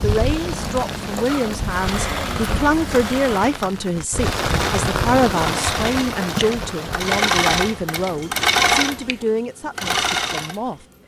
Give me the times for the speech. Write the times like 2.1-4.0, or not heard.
0.0-10.8.